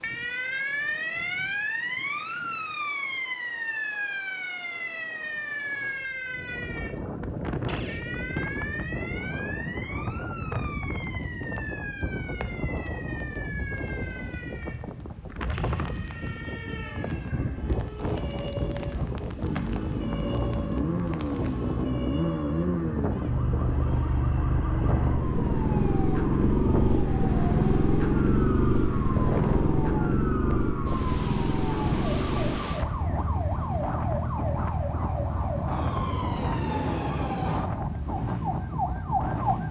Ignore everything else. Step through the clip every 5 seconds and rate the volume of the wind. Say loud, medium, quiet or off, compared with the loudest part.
quiet, loud, loud, loud, loud, loud, loud, loud.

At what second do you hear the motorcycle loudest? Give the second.
28 s.